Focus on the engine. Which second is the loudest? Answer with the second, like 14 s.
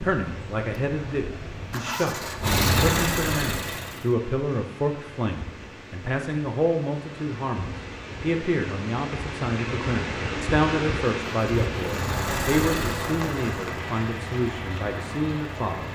3 s.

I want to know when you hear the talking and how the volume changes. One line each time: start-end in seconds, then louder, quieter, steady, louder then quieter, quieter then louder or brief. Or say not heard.
0.0-15.8 steady.